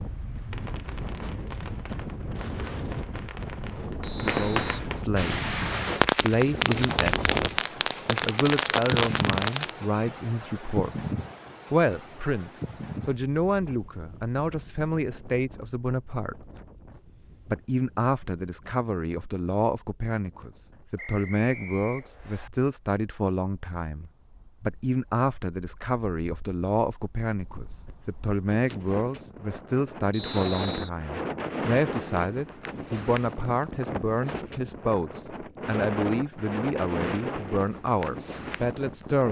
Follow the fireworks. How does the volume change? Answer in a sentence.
The loudness of the fireworks goes up.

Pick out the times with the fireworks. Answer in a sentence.
You can hear the fireworks from 0.3 to 9.7 s.